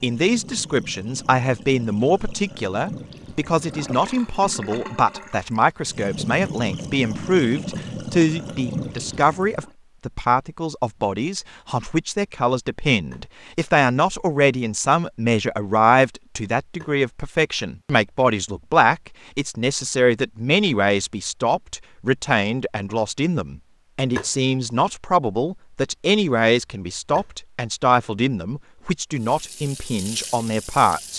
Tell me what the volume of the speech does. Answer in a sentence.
The loudness of the speech stays about the same.